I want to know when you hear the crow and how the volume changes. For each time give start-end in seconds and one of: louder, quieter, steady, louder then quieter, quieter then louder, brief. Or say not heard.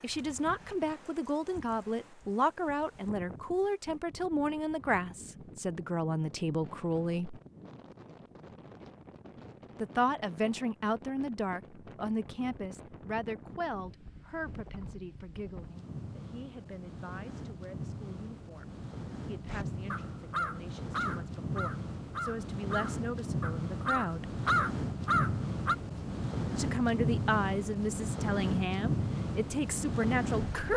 19.4-25.8 louder.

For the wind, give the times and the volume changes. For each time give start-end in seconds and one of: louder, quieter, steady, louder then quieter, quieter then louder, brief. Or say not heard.
0.0-30.7 louder.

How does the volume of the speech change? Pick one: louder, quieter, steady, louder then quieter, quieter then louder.
quieter then louder.